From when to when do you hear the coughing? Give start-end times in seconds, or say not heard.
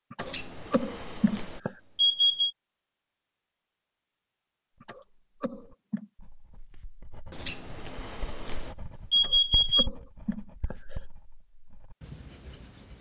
0.1-1.8, 4.8-6.1, 9.2-11.1.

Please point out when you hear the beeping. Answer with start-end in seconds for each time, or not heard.
0.2-2.5, 7.3-9.9.